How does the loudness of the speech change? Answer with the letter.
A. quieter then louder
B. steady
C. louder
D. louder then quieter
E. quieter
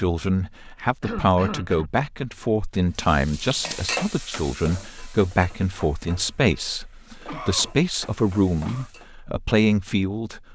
B.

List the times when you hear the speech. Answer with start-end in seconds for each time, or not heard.
0.0-10.5.